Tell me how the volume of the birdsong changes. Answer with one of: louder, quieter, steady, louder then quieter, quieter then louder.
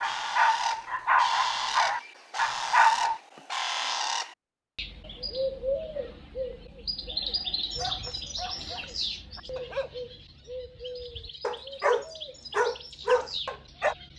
quieter.